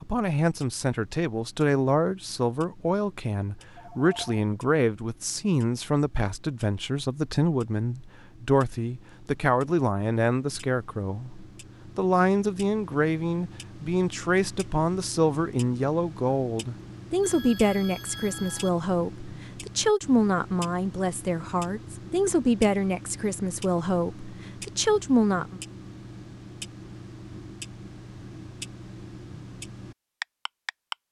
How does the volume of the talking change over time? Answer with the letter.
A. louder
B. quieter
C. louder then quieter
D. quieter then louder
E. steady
E.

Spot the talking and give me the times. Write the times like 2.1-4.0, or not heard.
0.0-25.6.